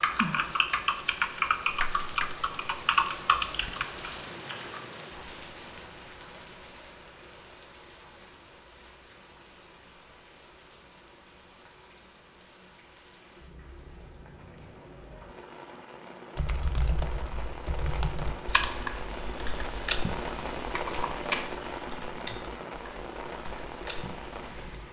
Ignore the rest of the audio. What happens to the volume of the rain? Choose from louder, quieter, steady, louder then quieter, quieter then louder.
quieter then louder.